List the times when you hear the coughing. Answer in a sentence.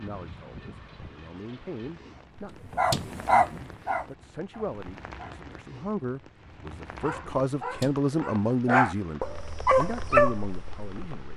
You can't hear the coughing here.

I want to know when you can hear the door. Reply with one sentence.
The door can be heard from 2.5 to 3.1 s and from 7.6 to 8.1 s.